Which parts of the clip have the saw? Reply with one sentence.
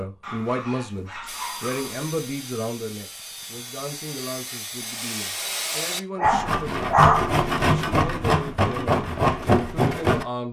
The saw can be heard from 1.2 to 10.2 s.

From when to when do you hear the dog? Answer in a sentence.
The dog can be heard from 0.2 to 2.0 s and from 6.2 to 7.5 s.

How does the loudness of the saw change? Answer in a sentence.
The volume of the saw goes up.